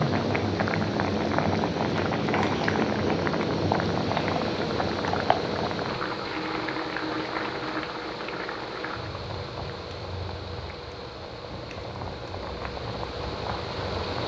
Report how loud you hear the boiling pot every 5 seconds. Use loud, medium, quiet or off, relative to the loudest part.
loud, medium, quiet.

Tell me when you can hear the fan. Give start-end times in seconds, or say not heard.
0.0-14.2.